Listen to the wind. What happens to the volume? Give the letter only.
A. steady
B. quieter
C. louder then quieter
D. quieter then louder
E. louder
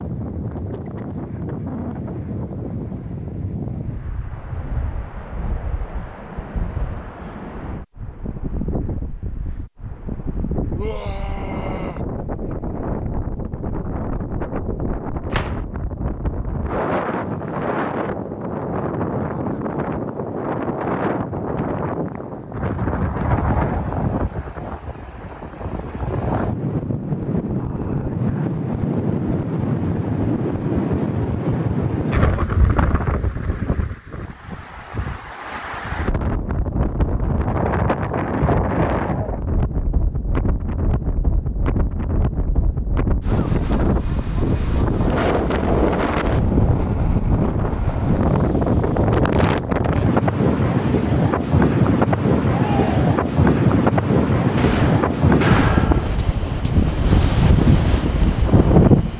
E.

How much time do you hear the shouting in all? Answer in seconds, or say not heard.
2 s.